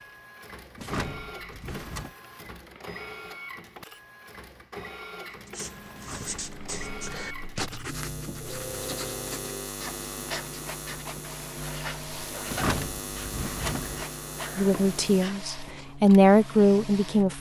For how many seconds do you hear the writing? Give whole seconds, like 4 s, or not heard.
11 s.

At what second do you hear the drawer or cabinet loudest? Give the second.
13 s.